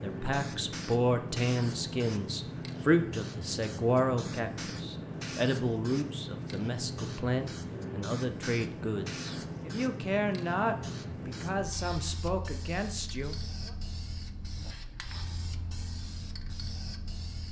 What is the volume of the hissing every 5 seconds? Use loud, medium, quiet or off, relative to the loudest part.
loud, loud, loud, medium.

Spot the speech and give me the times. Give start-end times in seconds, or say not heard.
0.0-13.8.